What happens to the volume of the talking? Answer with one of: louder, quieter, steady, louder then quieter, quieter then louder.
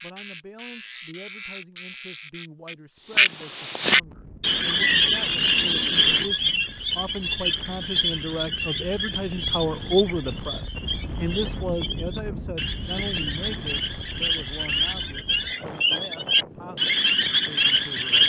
louder then quieter.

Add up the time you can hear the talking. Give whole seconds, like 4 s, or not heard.
18 s.